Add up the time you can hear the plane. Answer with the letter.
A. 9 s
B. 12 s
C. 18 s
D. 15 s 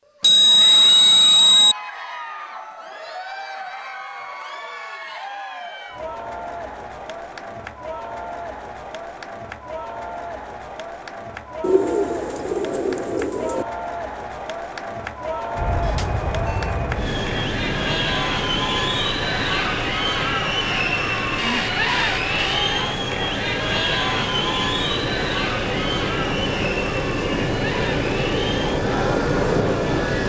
D.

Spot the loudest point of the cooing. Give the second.
12 s.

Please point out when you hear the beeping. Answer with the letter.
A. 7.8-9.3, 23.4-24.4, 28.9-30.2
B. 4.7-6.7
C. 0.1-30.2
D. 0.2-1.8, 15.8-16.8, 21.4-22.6
D.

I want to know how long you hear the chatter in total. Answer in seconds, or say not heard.
30 s.